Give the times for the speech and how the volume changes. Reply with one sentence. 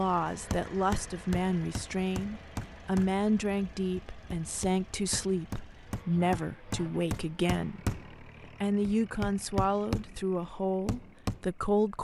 You can hear the speech from 0.0 to 11.9 s, at a steady volume.